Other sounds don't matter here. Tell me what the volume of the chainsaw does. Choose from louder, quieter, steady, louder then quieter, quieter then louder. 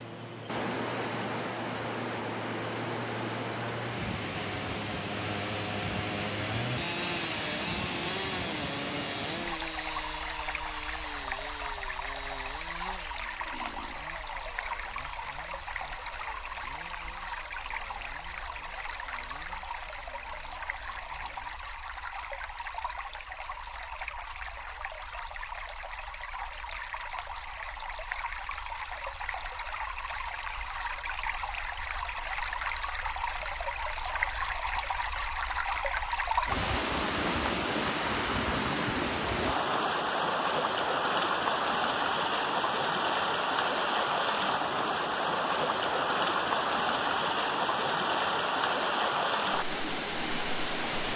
louder then quieter.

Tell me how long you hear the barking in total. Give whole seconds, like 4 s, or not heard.
not heard.